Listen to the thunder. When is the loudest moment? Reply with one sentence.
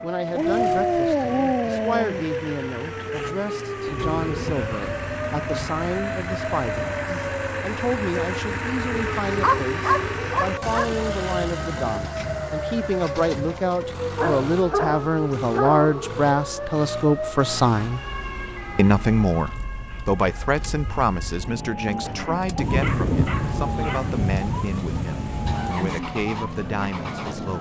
The volume of the thunder peaks at 23 seconds.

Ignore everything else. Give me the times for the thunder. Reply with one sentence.
You can hear the thunder from 3.9 to 7.3 s and from 22.6 to 26.0 s.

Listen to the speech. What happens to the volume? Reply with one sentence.
The loudness of the speech goes up, then down.